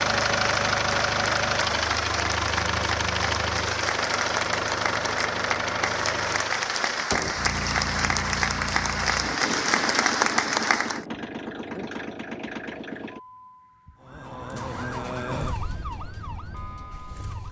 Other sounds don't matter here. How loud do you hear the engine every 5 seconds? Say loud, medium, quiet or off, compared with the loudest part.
loud, medium, medium, quiet.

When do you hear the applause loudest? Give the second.
10 s.